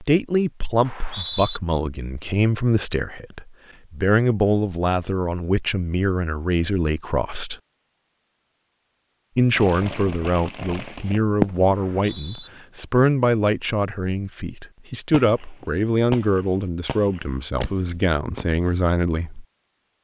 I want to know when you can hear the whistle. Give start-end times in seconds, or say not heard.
0.8-1.6, 11.8-12.5.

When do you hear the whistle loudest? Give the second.
1 s.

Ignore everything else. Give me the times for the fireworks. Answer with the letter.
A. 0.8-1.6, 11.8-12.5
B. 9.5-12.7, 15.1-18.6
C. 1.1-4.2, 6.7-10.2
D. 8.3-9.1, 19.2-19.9
B.